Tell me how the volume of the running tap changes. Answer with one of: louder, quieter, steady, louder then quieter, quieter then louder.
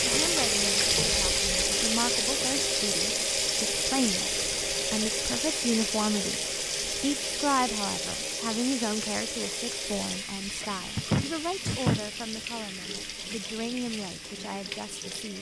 quieter.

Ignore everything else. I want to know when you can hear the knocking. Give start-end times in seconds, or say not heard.
10.9-12.1.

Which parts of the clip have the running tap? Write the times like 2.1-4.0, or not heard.
0.0-15.3.